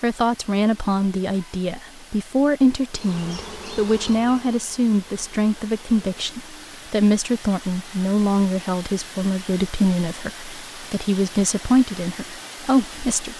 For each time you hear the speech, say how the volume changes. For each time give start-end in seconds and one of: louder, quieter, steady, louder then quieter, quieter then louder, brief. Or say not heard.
0.0-13.3 steady.